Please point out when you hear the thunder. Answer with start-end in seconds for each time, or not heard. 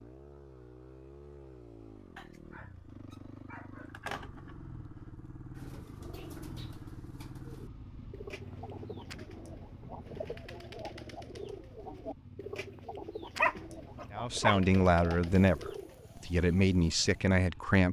8.4-10.4.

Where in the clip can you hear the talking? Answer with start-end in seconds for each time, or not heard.
14.1-17.8.